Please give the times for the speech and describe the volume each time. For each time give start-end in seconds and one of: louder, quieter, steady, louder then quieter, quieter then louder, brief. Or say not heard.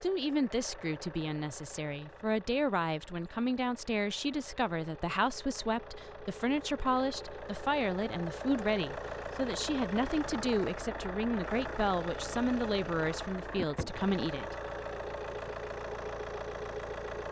0.0-14.6 steady.